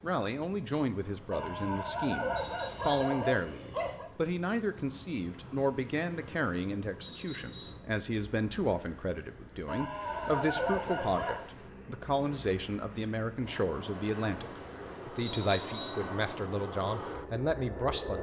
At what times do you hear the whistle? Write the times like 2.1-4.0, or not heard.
2.4-3.2, 7.0-7.8, 15.2-16.1.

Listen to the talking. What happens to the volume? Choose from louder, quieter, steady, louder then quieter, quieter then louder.
steady.